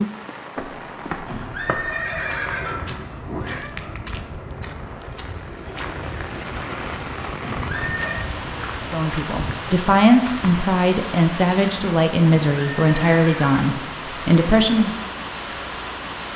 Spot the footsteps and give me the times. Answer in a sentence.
You can hear the footsteps from 0.6 to 10.7 s.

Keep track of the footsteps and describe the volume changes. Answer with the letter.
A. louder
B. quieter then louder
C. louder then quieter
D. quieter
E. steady
E.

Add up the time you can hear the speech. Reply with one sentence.
You can hear the speech for 6 seconds altogether.